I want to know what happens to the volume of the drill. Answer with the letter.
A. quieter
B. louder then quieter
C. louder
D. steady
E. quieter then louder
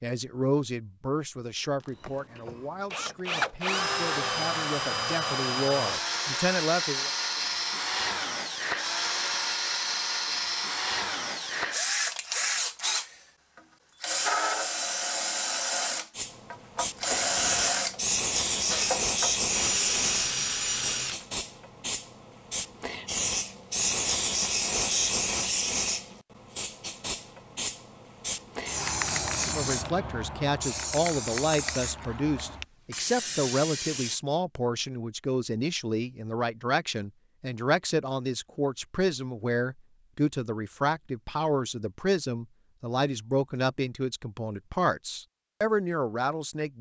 D.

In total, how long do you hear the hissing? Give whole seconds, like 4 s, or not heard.
18 s.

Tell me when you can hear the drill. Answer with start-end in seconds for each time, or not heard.
1.9-21.2.